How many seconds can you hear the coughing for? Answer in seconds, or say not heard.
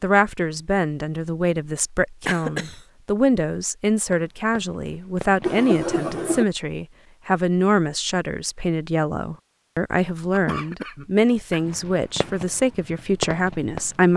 3 s.